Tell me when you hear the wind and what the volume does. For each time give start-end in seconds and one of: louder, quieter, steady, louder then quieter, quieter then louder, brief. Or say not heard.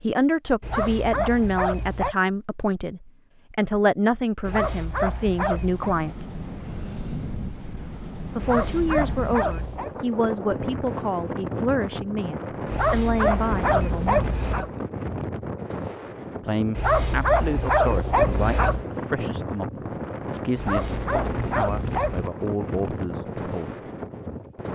5.5-24.6 steady.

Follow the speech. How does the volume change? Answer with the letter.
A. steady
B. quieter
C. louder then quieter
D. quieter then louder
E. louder
B.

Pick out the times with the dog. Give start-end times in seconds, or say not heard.
0.6-2.1, 4.5-6.0, 8.4-9.9, 12.7-14.7, 16.8-18.9, 20.6-22.3.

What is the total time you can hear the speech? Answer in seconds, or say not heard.
20 s.